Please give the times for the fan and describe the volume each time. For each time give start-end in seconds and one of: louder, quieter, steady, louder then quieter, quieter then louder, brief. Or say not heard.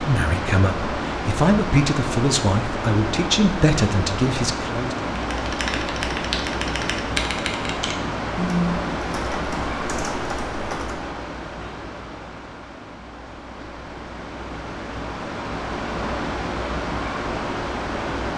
0.0-18.3 quieter then louder.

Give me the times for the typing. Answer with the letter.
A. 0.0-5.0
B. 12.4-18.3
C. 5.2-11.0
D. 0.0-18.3
C.